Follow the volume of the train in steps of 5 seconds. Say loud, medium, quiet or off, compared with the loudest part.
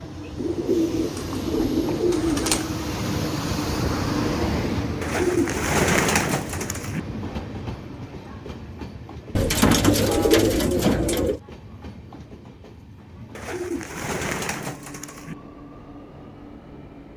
loud, medium, quiet, quiet.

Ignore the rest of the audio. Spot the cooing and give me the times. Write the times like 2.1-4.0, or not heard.
0.3-2.6, 5.0-7.0, 9.3-11.4, 13.3-15.3.